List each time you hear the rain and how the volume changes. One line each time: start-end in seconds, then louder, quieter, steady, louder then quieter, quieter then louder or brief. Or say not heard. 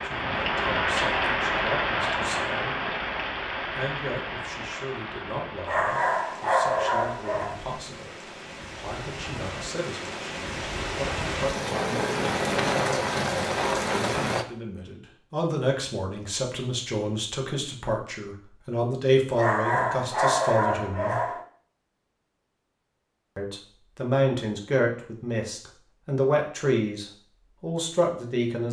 0.0-14.4 quieter then louder.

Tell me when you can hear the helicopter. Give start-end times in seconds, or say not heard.
not heard.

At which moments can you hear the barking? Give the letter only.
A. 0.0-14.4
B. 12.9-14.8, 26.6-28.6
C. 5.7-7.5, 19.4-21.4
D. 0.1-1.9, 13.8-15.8
C.